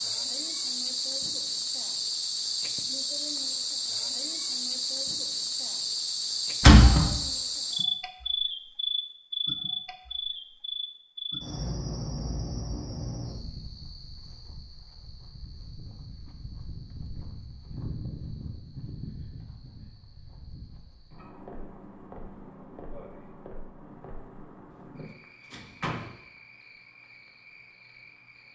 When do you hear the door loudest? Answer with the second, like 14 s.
7 s.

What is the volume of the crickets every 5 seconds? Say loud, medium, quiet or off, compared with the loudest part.
loud, loud, medium, quiet, quiet, quiet.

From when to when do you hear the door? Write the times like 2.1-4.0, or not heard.
6.6-7.1, 25.5-26.1.